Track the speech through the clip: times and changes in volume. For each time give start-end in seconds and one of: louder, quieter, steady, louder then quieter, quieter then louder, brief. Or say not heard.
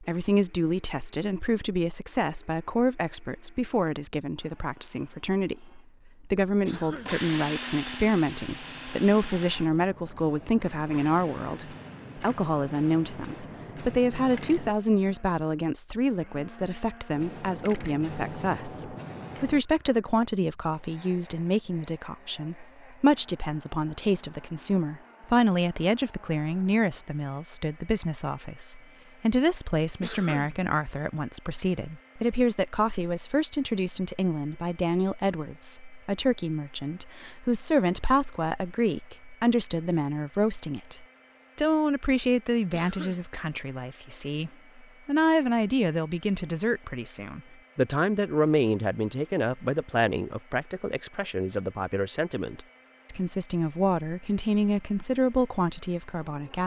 0.0-56.6 steady.